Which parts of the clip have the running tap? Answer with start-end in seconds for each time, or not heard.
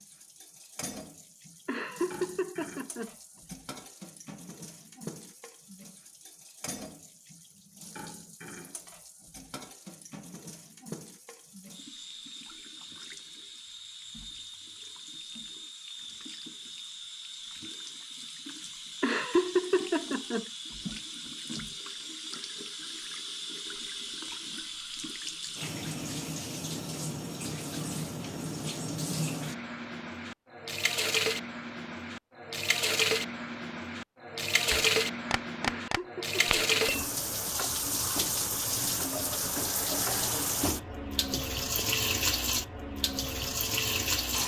0.0-44.4.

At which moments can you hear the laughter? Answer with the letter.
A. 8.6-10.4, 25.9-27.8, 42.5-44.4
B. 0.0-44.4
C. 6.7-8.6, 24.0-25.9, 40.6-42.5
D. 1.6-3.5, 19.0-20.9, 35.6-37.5
D.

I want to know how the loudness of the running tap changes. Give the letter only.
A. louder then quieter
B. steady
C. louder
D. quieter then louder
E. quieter
C.